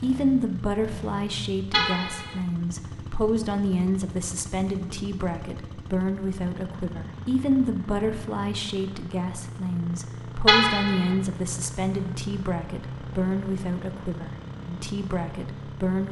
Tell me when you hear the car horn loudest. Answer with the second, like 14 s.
11 s.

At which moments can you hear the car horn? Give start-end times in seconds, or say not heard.
1.7-2.4, 10.4-11.2.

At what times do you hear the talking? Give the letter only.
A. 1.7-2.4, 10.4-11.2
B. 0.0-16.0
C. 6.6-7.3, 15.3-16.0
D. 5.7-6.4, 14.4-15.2
B.